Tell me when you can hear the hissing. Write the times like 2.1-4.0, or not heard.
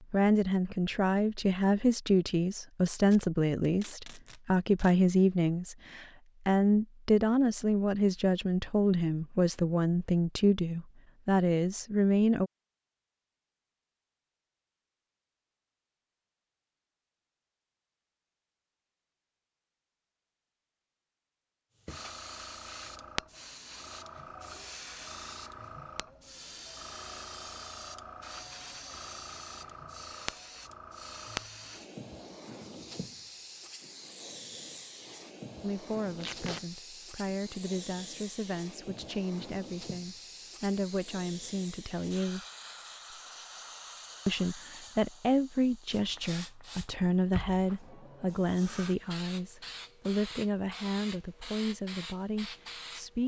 21.8-53.2.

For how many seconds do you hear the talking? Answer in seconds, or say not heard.
28 s.